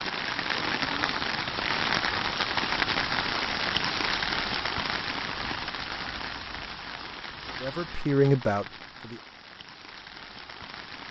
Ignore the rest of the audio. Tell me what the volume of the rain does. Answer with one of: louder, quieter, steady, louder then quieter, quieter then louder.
quieter.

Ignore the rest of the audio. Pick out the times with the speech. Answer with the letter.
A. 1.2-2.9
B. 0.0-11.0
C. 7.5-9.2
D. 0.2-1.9
C.